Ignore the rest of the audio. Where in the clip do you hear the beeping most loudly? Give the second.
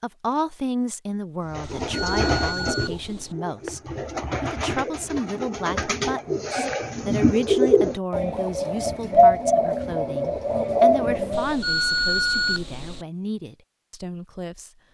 12 s.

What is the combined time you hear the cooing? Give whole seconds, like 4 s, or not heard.
10 s.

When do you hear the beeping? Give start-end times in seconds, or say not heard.
1.8-3.4, 11.3-13.1.